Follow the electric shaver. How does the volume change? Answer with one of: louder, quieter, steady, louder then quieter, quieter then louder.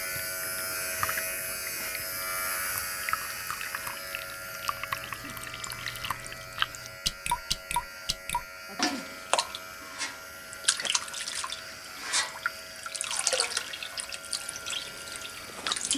quieter.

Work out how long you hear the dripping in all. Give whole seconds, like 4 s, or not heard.
16 s.